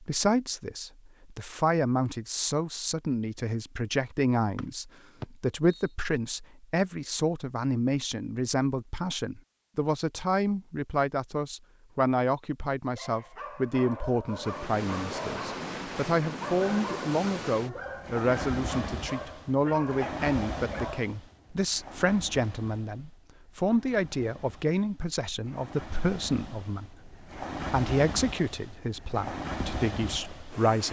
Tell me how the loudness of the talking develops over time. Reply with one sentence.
The loudness of the talking stays about the same.